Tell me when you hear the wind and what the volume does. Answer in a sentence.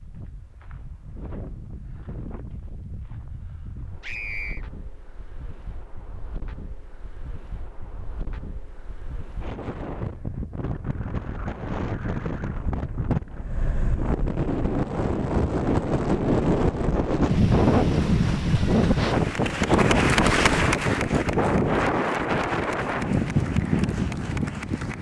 You can hear the wind from 0.0 to 24.9 s, getting louder.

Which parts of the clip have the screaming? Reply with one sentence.
You can hear the screaming from 4.0 to 4.7 s.